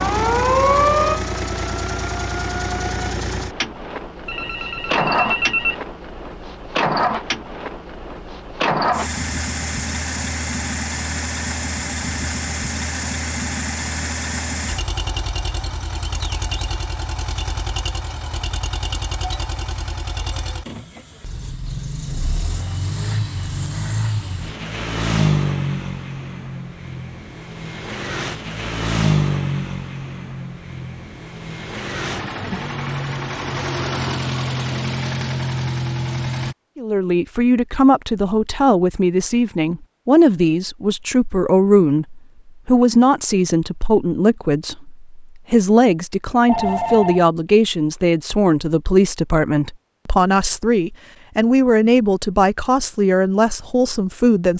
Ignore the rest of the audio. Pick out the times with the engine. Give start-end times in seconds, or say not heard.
0.0-36.5.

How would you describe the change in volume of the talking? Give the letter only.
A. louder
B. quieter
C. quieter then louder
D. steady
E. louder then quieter
D.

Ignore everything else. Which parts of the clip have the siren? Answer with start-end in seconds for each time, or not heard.
0.0-3.0.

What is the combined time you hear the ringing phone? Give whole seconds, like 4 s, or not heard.
2 s.